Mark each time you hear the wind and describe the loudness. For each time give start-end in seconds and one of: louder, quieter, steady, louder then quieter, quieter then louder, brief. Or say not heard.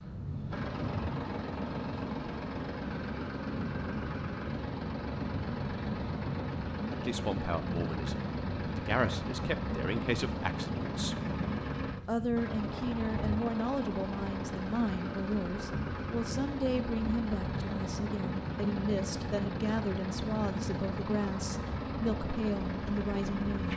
0.0-23.7 steady.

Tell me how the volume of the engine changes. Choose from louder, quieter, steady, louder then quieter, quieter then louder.
steady.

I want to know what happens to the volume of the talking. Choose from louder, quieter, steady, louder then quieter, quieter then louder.
steady.